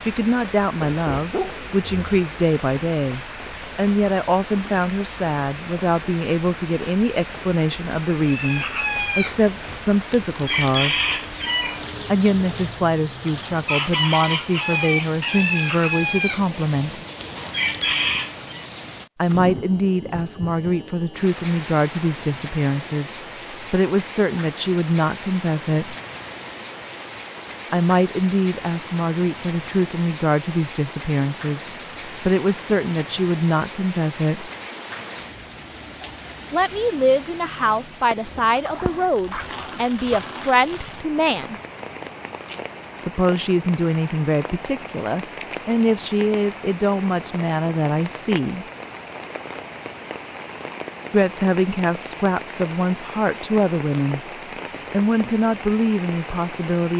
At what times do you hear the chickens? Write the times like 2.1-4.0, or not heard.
8.3-18.6.